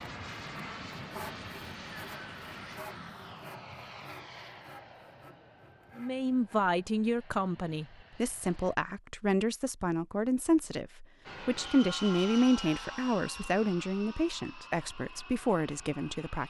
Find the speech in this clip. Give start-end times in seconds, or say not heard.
6.0-16.4.